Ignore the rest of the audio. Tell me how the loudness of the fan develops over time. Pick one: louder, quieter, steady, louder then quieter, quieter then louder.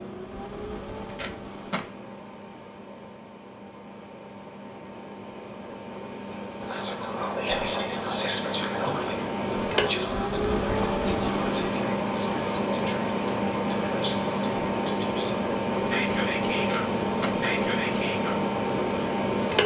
louder.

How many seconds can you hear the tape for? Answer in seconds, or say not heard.
2 s.